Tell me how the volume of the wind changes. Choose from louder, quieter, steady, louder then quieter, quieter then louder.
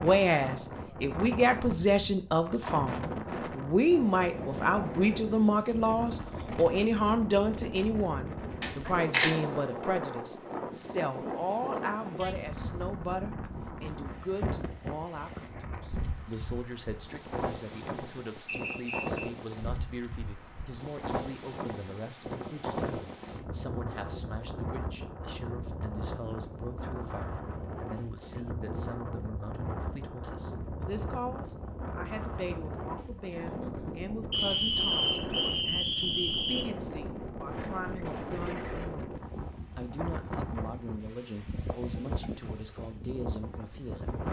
steady.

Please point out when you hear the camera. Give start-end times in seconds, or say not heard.
8.6-9.4.